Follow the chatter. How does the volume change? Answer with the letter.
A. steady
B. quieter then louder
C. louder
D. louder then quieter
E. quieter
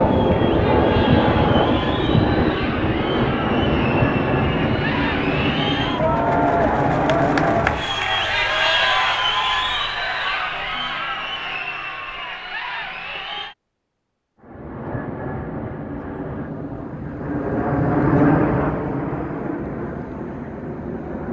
D.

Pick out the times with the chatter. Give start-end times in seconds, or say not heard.
0.0-13.6.